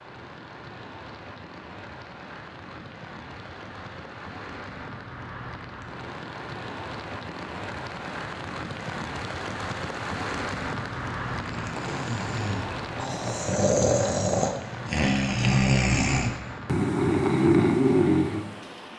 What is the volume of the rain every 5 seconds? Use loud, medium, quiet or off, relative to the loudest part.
medium, loud, loud, medium.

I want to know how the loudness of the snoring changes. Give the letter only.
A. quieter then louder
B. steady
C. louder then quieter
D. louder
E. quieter
D.